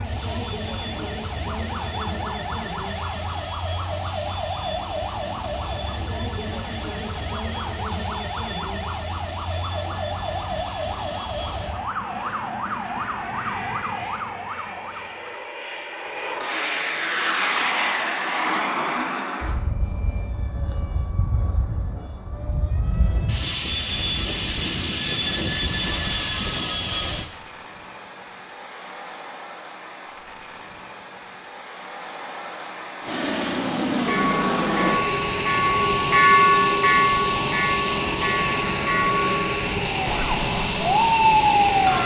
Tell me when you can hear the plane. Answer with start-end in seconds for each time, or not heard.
0.0-42.0.